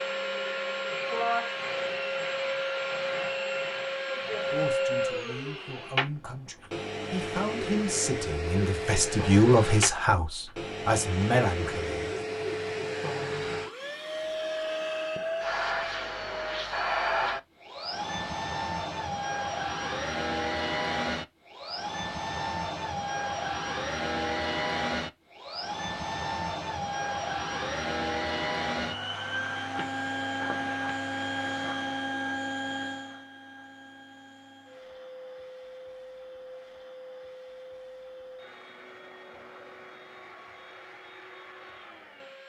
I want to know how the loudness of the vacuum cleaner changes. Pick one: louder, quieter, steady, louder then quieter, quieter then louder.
quieter.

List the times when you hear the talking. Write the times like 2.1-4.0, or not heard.
4.2-12.3.